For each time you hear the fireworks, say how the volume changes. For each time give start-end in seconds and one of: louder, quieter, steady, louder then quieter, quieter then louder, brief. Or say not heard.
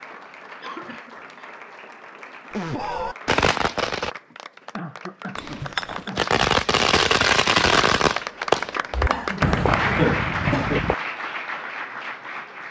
2.5-4.2 brief
6.2-10.9 quieter.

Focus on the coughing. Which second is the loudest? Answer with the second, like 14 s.
10 s.